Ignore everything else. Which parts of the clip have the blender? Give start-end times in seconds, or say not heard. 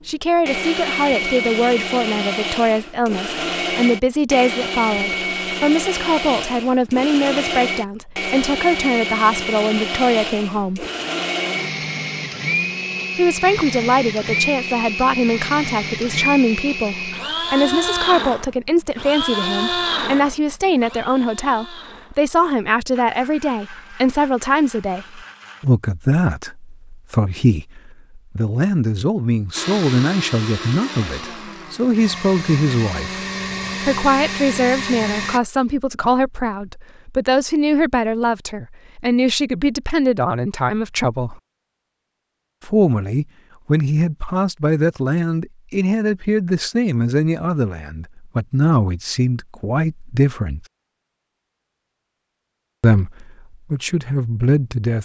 0.5-25.6, 29.6-35.4.